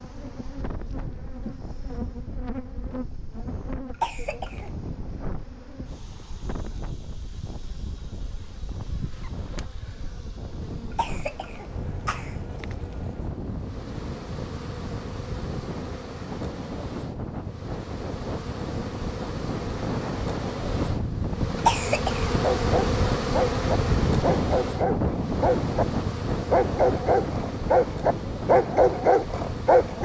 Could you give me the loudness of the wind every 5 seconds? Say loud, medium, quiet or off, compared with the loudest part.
quiet, quiet, medium, medium, loud, loud.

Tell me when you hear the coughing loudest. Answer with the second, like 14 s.
22 s.